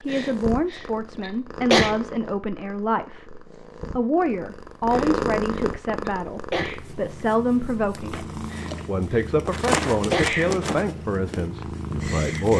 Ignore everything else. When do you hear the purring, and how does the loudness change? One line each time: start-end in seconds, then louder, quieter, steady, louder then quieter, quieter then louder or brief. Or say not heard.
0.0-12.5 louder.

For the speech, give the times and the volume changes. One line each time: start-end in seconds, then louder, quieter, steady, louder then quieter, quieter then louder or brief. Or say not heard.
0.0-12.5 steady.